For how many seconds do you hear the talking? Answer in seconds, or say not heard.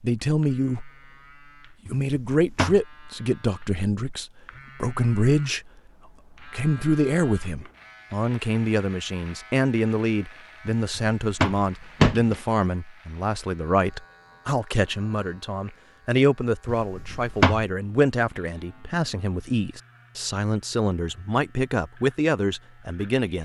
22 s.